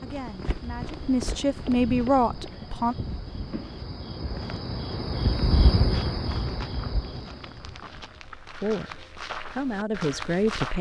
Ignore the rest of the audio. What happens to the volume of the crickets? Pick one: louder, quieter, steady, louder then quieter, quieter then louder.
louder then quieter.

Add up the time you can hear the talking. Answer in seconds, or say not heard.
5 s.